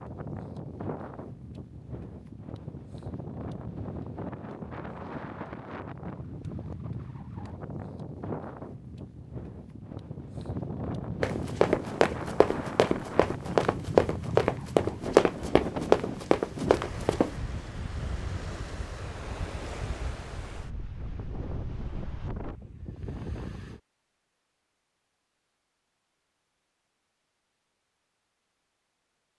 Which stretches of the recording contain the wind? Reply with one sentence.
The wind can be heard from 0.0 to 23.8 s.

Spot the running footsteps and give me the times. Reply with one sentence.
You can hear the running footsteps from 11.2 to 17.4 s.